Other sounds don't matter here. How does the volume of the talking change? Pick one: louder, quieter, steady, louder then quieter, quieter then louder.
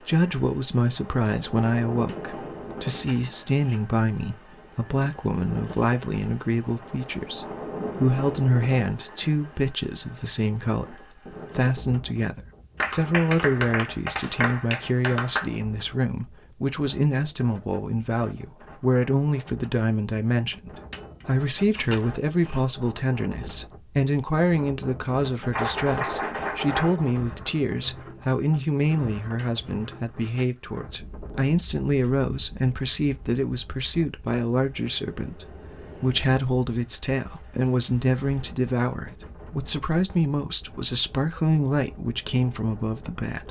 steady.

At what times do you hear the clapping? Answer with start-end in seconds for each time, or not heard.
12.8-15.4, 25.5-27.1.